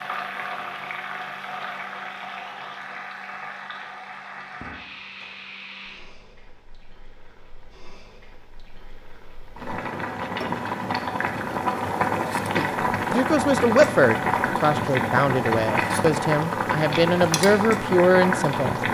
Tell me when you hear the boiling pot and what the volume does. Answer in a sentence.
You can hear the boiling pot from 0.0 to 18.8 s, getting quieter then louder.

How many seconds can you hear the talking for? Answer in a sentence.
You can hear the talking for 6 seconds altogether.